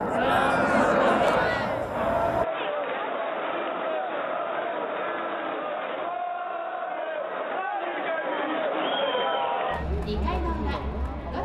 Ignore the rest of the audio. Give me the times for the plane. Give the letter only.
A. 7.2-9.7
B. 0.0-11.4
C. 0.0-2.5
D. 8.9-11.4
C.